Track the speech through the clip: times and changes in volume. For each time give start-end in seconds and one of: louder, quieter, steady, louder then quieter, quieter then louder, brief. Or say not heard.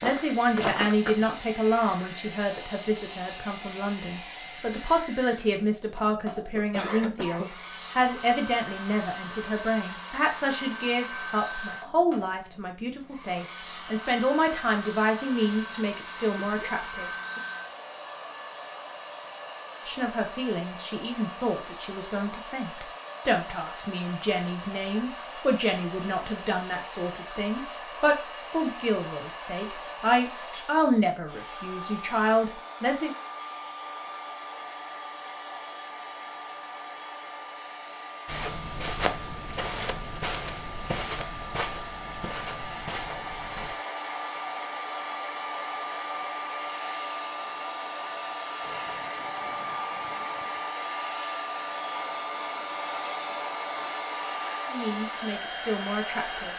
0.0-17.4 steady
19.9-33.1 louder
54.6-56.5 brief.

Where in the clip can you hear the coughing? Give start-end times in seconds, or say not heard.
6.5-7.5.